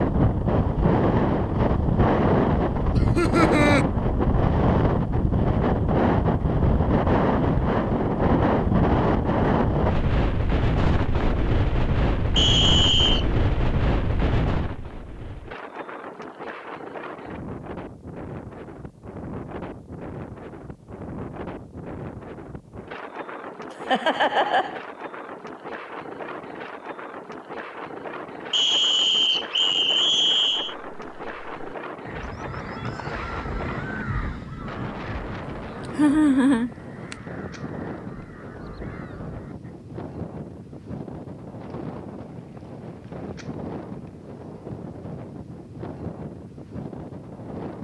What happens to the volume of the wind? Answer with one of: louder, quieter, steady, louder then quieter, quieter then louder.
quieter.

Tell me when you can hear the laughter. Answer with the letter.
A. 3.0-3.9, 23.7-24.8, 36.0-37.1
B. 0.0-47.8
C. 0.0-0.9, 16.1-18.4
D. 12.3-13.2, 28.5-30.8
A.